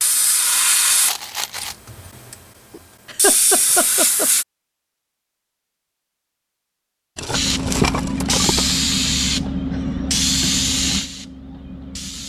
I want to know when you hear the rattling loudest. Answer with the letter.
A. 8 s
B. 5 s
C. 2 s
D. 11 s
A.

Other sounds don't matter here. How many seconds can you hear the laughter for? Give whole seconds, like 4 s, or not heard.
2 s.